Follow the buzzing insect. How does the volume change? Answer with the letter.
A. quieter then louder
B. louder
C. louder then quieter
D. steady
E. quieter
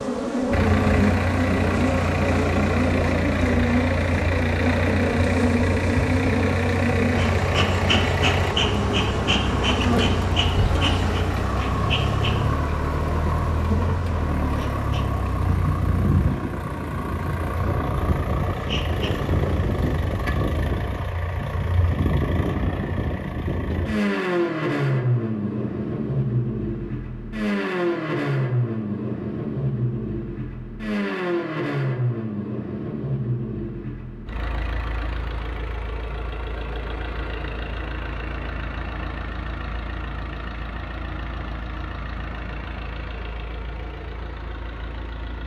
E.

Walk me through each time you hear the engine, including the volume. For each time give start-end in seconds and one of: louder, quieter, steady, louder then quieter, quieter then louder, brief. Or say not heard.
0.0-45.4 quieter.